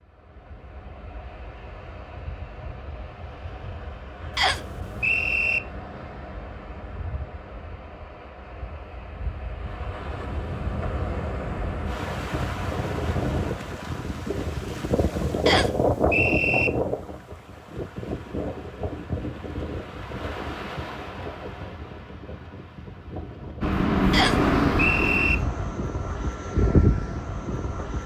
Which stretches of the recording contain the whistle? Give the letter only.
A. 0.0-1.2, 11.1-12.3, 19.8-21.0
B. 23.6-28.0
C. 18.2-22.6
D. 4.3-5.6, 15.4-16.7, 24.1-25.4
D.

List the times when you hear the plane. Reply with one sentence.
You can hear the plane from 23.6 to 28.0 s.